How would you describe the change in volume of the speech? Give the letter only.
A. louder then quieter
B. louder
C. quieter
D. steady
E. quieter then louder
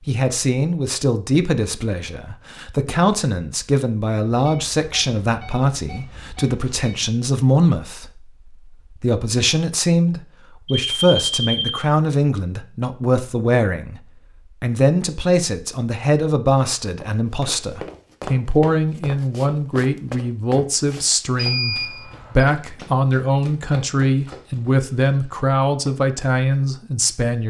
D.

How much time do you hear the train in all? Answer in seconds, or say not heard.
not heard.